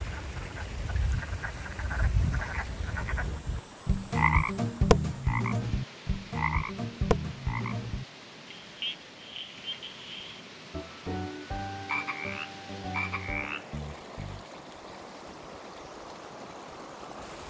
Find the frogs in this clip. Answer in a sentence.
You can hear the frogs from 0.0 to 14.4 s.